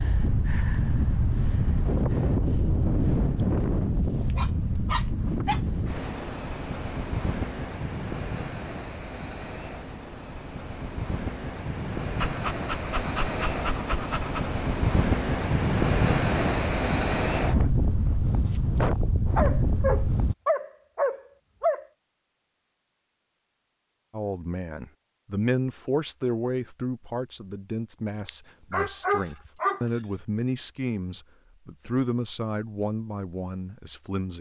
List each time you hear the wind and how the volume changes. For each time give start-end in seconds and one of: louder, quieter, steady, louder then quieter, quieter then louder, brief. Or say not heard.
0.0-20.4 quieter then louder.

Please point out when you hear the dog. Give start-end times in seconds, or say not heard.
4.3-5.7, 12.2-14.5, 19.4-21.9, 28.2-29.9.